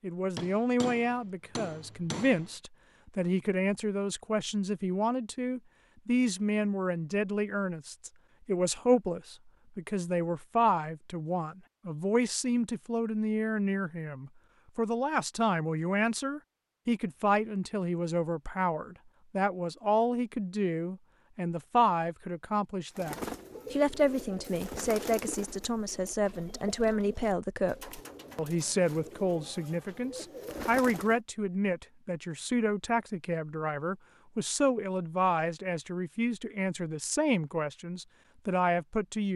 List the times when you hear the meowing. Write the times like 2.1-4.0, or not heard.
not heard.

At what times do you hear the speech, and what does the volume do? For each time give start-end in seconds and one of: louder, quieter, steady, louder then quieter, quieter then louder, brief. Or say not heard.
0.0-39.3 steady.